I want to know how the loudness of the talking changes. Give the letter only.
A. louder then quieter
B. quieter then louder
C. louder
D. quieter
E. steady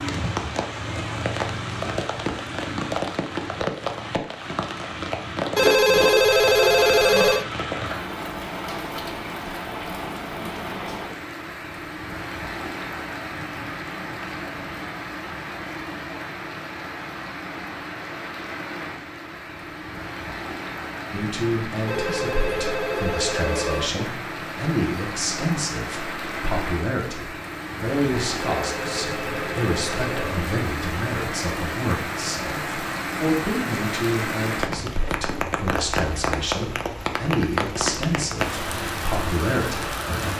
E.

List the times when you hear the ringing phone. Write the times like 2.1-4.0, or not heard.
5.5-7.5, 21.9-23.9, 28.4-30.4.